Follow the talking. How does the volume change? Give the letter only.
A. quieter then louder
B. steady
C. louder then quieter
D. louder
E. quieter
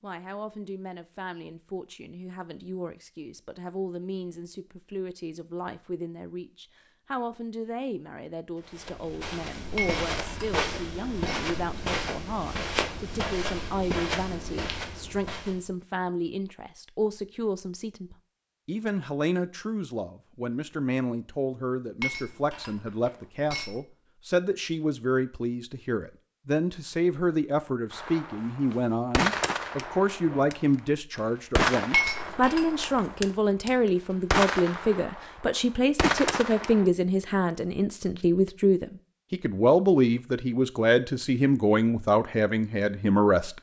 D.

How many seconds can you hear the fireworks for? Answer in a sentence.
You can hear the fireworks for 9 seconds altogether.